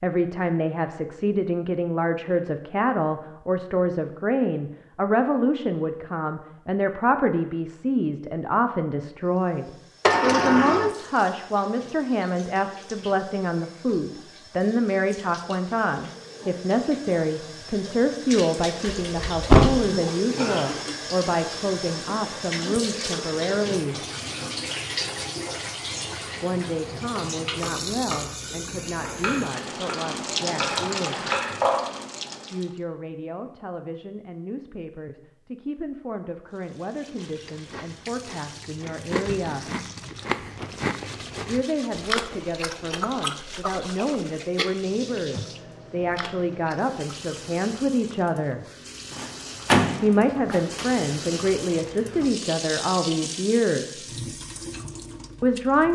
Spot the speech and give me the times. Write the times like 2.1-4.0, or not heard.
0.0-23.9, 26.4-31.2, 32.5-39.8, 41.5-48.6, 50.0-54.0, 55.4-55.9.